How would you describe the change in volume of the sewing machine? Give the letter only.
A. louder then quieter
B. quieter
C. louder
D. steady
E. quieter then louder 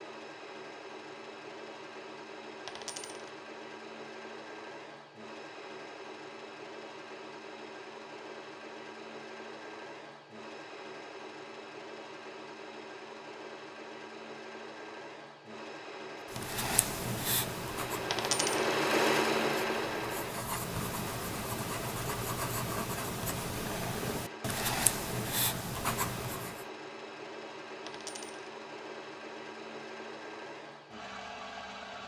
A.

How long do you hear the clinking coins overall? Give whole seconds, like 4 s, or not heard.
2 s.